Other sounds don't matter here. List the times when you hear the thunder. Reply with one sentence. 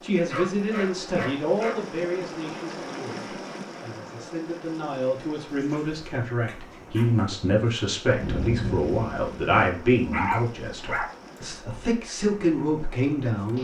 The thunder can be heard from 8.2 to 9.6 s.